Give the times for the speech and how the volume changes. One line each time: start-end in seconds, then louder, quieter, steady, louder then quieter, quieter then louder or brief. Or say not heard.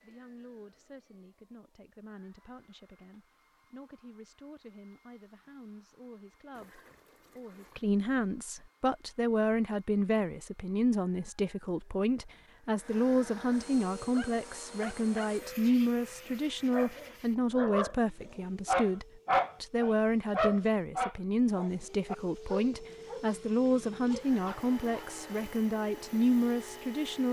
0.0-27.2 louder.